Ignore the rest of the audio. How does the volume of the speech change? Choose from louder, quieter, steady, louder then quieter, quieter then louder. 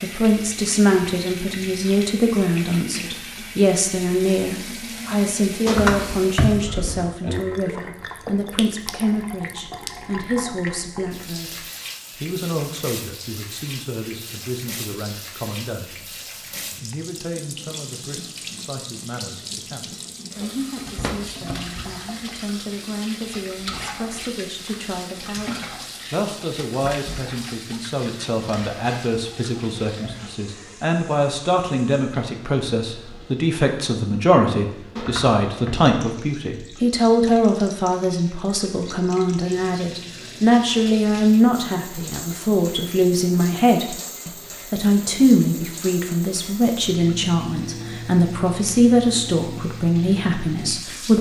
quieter then louder.